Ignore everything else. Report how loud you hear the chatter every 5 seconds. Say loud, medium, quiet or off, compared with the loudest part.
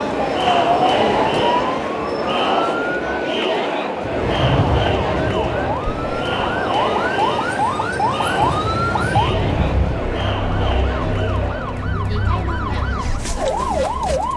loud, loud, medium.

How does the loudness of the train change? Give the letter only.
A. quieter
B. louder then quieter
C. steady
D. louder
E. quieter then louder
E.